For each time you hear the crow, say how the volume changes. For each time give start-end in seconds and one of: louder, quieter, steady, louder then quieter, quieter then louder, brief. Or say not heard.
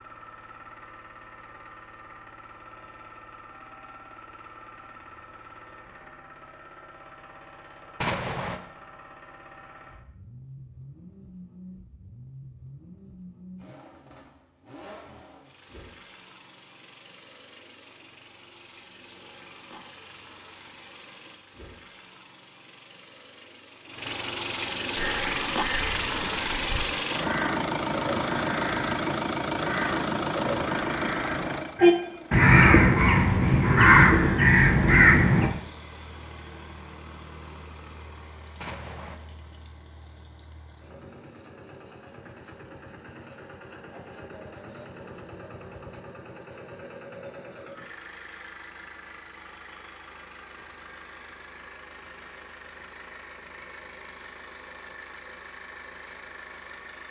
24.9-35.5 louder.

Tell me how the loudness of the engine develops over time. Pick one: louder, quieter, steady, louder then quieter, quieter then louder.
louder then quieter.